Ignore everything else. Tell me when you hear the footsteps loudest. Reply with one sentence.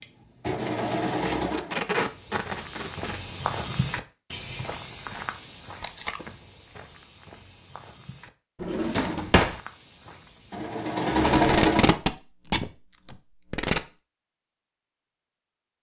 The loudest moment of the footsteps is at 4 seconds.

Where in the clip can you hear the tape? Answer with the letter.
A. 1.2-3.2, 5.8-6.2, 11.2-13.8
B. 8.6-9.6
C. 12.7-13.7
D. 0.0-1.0
A.